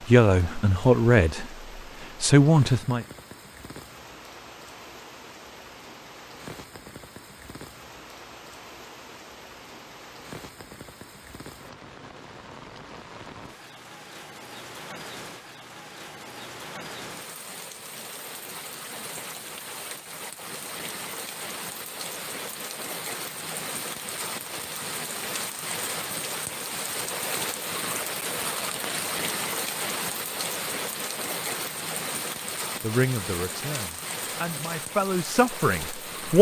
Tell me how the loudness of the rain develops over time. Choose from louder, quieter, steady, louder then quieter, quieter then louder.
louder.